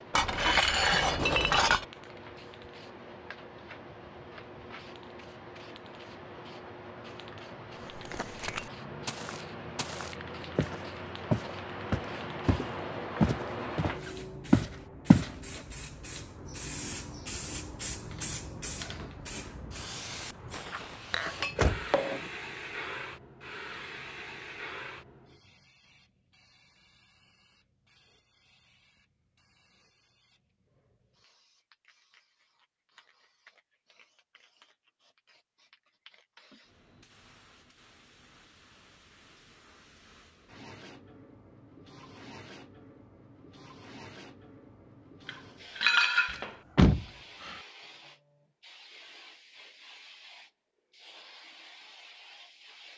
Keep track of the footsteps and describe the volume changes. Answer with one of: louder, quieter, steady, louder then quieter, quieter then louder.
louder.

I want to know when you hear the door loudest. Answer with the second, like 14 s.
47 s.